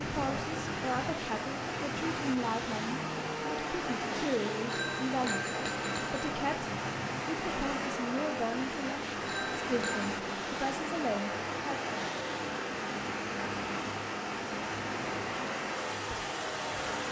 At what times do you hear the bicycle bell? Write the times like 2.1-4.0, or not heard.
4.7-6.3, 9.2-10.1.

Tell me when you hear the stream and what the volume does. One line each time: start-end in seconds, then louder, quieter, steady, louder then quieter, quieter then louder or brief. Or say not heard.
0.0-17.0 steady.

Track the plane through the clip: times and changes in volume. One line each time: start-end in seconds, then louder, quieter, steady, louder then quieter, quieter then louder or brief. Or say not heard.
0.0-17.0 steady.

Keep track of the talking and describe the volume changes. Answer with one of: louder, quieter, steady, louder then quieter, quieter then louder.
steady.